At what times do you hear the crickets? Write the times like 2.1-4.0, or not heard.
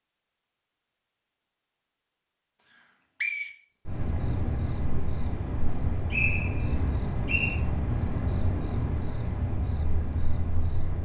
3.6-11.0.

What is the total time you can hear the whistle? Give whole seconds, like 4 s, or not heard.
2 s.